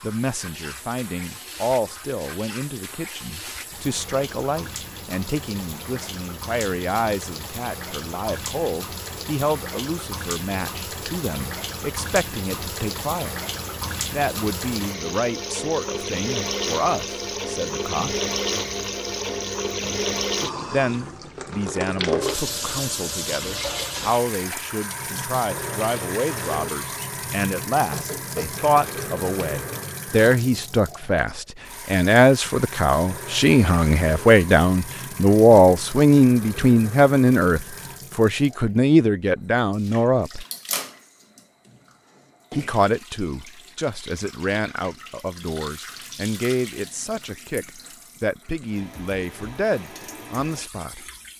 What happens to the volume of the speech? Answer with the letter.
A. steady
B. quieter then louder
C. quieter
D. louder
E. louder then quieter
E.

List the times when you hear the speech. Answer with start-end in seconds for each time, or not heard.
0.0-13.3, 14.1-18.2, 20.7-40.5, 42.5-51.0.